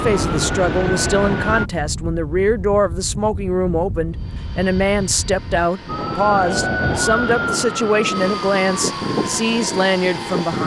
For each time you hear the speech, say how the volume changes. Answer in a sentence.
You can hear the speech from 0.0 to 10.6 s, at a steady volume.